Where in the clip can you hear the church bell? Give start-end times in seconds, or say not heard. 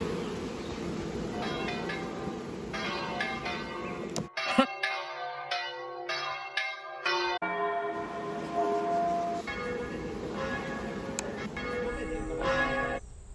1.3-13.0.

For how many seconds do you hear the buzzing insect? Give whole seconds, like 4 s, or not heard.
10 s.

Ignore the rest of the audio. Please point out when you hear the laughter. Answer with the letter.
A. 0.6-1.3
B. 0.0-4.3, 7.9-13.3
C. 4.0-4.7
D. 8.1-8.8
C.